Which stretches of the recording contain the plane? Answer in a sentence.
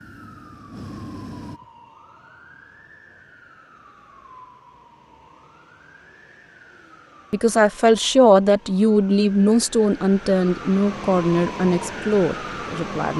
You can hear the plane from 0.0 to 1.6 s.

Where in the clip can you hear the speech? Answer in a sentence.
You can hear the speech from 7.3 to 13.1 s.